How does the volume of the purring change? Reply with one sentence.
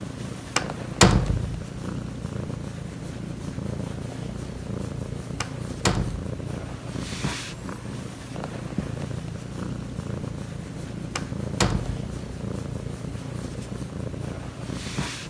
The loudness of the purring stays about the same.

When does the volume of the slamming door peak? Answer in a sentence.
The volume of the slamming door peaks at 1 second.